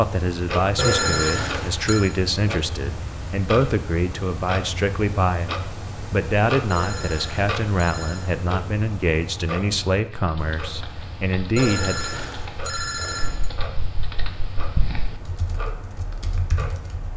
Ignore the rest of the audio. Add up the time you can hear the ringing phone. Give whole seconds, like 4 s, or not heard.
5 s.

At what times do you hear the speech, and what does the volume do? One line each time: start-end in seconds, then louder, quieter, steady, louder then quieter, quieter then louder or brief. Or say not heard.
0.0-12.0 steady.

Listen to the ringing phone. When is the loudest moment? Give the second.
1 s.